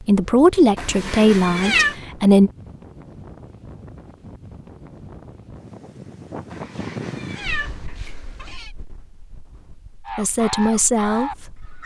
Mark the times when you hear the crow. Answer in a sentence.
You can hear the crow from 10.1 to 11.8 s.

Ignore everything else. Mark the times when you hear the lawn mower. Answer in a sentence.
You can't hear the lawn mower here.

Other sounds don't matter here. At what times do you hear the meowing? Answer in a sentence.
The meowing can be heard from 0.8 to 1.9 s and from 6.5 to 8.7 s.